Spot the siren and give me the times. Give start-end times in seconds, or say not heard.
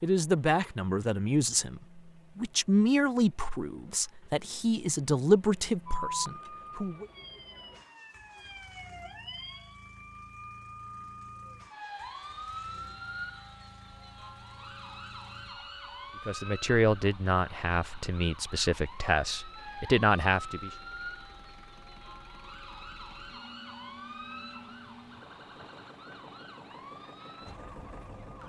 5.8-28.4.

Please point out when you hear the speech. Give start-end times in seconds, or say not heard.
0.0-7.0, 16.2-20.7.